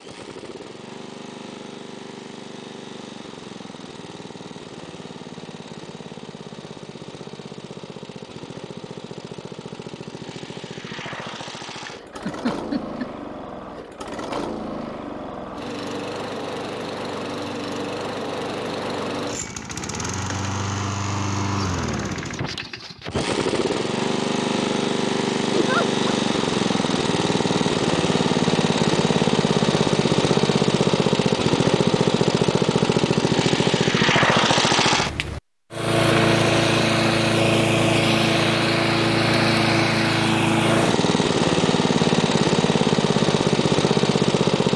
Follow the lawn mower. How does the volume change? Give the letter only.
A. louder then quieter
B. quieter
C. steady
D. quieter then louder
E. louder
E.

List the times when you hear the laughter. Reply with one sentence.
The laughter can be heard from 11.8 to 13.1 s and from 25.5 to 26.1 s.